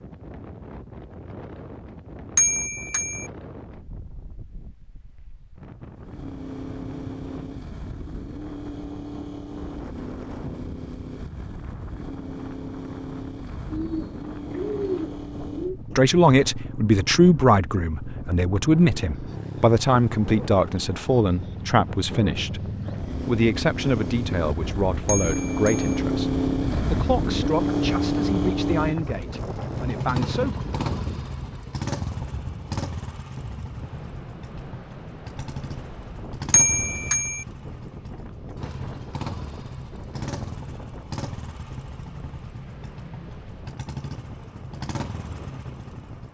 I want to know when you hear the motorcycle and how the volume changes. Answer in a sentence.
You can hear the motorcycle from 5.9 to 46.2 s, getting louder then quieter.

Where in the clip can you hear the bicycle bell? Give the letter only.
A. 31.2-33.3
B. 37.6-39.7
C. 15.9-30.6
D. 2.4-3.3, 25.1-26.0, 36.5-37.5
D.